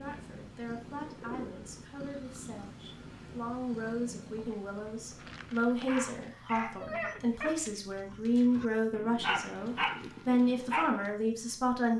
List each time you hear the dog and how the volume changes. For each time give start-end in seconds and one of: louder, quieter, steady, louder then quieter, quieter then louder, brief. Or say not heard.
5.8-11.1 quieter then louder.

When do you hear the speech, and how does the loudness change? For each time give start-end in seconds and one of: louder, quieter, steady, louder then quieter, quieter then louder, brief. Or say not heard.
0.0-11.9 louder.